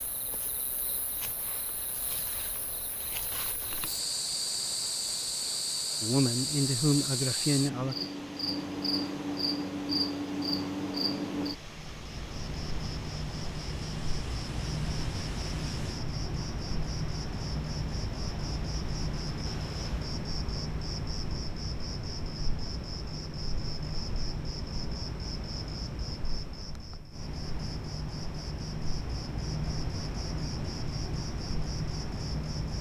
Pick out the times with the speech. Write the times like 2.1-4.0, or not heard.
6.0-8.0.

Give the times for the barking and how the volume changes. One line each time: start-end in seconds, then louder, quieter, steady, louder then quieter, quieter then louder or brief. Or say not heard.
not heard.